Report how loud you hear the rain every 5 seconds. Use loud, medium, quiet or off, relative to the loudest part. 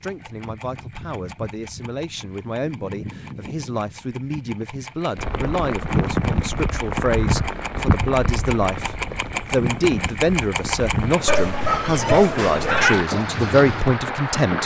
off, loud, loud.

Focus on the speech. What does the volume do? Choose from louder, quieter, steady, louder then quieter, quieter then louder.
louder.